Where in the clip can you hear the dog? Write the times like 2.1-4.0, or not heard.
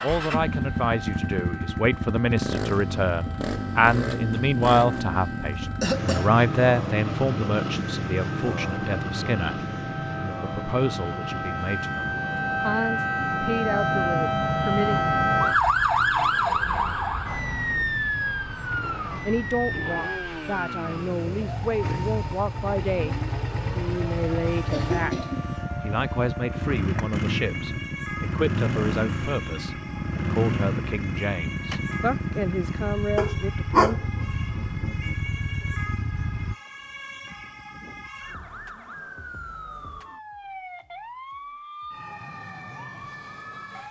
33.1-35.1.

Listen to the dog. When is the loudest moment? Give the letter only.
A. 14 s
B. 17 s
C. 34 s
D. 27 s
C.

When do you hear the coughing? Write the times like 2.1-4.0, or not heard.
5.7-6.3, 24.7-25.6.